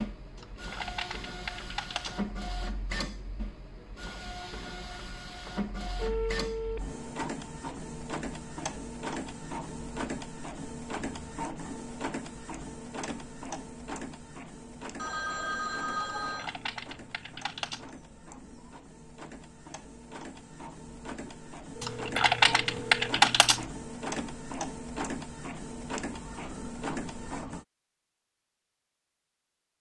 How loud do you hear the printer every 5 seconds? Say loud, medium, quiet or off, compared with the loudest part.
loud, loud, loud, medium, loud, loud.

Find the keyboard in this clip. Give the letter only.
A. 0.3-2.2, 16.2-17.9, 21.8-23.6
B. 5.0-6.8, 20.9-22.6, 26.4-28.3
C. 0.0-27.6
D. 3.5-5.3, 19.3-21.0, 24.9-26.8
A.